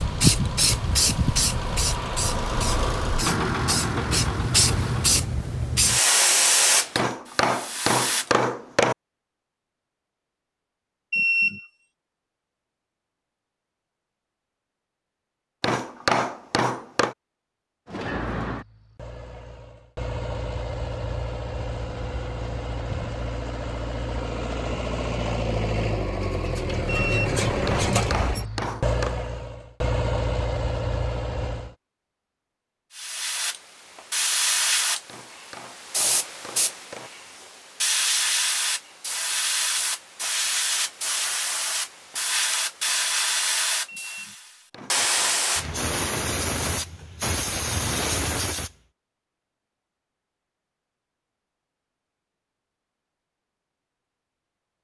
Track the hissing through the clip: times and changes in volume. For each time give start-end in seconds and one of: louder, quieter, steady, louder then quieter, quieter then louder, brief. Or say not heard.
0.0-8.2 quieter then louder
33.0-48.7 steady.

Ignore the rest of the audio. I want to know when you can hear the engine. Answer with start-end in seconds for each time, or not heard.
0.0-5.2, 17.9-31.8.